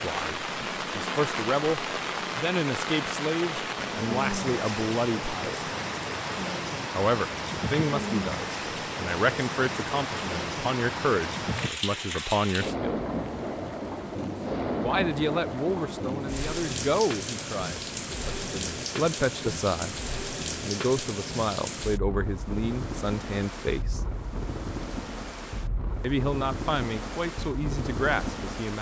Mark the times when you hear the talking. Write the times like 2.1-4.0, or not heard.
0.0-5.6, 6.9-13.0, 14.8-20.0, 20.6-24.0, 26.0-28.7.